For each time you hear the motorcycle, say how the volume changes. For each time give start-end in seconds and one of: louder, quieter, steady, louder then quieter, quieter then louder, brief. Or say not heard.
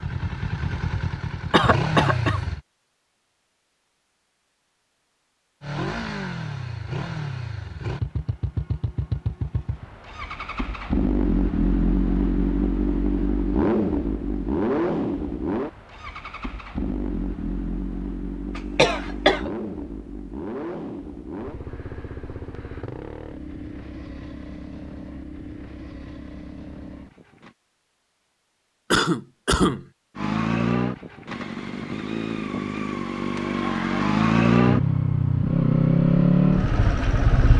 0.0-2.6 brief
5.6-27.6 louder then quieter
30.1-37.5 louder.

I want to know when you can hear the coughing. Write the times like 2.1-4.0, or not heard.
1.5-2.4, 18.6-19.5, 28.9-29.9.